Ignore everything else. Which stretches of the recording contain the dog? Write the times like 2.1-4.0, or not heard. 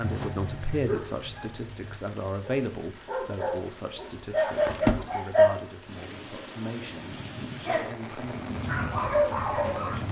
0.0-5.5, 7.7-10.0.